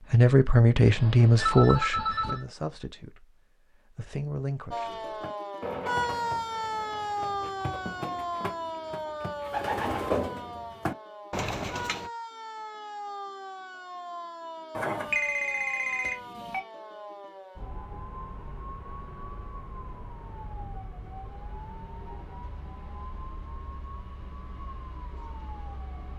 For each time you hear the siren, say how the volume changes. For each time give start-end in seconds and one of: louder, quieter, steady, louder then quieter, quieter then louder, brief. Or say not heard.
4.7-26.1 quieter.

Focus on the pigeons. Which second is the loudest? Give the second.
10 s.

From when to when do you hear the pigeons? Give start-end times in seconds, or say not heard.
4.8-12.1.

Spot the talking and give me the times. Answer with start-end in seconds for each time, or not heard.
0.1-5.0.